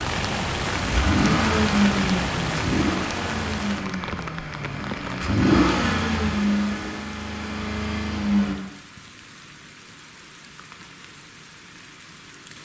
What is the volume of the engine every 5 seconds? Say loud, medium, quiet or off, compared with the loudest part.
loud, loud, off.